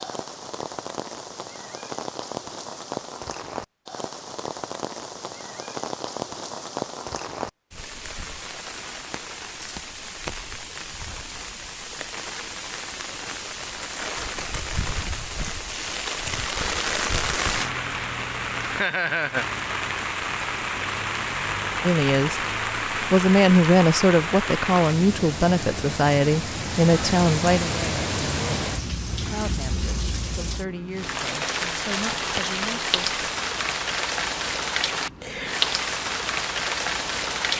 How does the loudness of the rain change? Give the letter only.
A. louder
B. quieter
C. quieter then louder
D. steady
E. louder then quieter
A.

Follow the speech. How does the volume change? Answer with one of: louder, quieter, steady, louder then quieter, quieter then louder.
quieter.